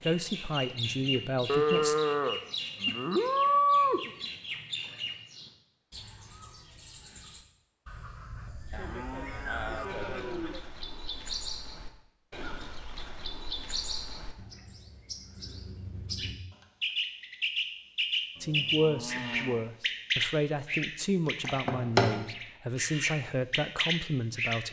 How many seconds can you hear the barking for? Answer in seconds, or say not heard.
not heard.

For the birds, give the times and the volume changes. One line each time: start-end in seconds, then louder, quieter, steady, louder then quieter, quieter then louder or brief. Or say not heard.
0.0-24.6 quieter then louder.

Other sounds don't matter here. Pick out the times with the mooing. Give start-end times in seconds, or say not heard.
1.4-4.1, 8.7-10.6, 18.4-19.7.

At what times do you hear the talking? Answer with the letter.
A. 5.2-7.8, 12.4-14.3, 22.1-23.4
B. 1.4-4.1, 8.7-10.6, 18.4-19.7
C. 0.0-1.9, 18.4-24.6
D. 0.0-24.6
C.